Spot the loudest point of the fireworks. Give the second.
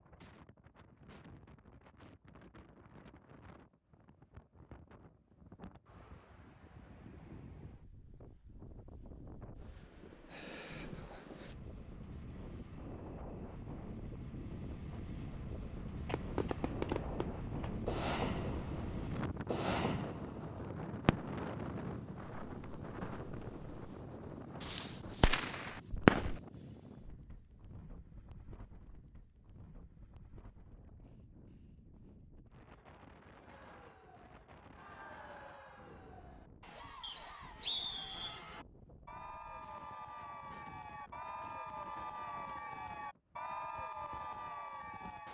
26 s.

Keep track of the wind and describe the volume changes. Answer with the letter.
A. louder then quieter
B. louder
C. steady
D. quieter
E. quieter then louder
A.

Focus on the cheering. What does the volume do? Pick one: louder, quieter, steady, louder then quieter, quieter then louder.
louder.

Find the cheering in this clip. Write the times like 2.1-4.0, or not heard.
33.4-45.2.